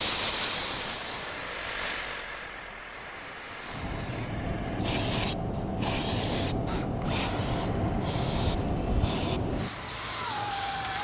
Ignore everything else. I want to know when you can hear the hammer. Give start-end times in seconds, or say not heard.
not heard.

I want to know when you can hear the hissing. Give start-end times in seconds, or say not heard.
0.0-10.9.